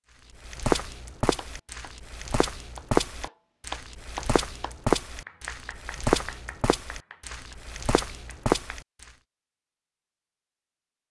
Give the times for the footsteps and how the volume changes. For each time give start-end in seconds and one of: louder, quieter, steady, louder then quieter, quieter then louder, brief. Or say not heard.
0.5-9.1 louder.